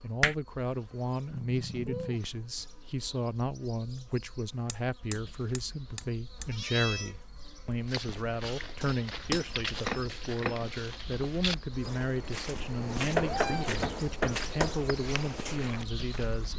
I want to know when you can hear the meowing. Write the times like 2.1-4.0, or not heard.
1.3-2.2, 6.0-7.2, 12.8-14.2.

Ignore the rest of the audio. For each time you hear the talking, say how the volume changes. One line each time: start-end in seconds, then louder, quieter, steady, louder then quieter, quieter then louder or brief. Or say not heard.
0.0-16.5 steady.